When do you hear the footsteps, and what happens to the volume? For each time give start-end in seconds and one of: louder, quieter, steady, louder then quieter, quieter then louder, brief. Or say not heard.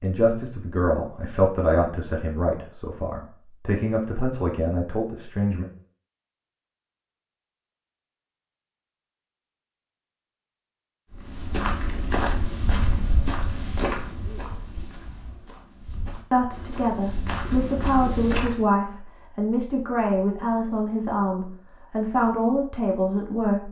11.1-18.6 quieter then louder.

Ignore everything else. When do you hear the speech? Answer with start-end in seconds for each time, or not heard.
0.0-5.7, 16.3-23.6.